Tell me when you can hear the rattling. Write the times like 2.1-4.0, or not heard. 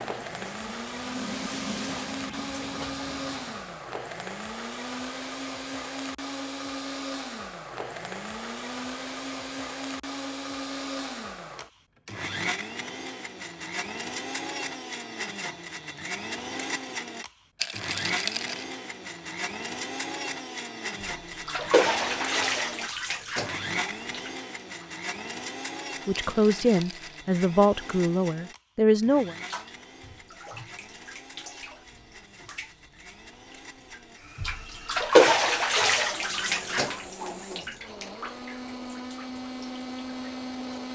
17.6-18.6, 26.2-27.2.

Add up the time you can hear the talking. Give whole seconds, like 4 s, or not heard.
3 s.